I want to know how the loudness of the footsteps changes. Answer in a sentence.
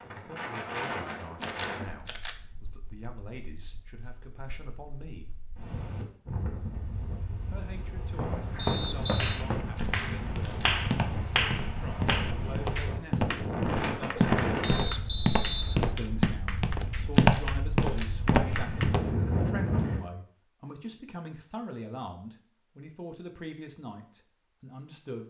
The volume of the footsteps goes up.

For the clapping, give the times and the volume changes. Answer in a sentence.
You can hear the clapping from 9.2 to 18.9 s, getting quieter.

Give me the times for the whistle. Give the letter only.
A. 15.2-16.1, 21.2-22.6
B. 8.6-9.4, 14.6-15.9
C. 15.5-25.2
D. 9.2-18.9
B.